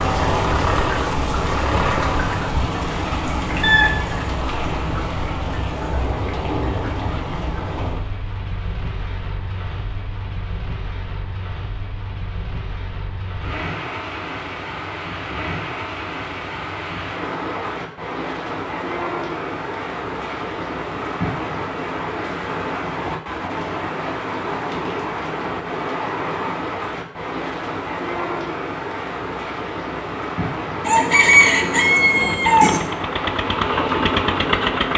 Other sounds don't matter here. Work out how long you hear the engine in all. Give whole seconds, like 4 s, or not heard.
5 s.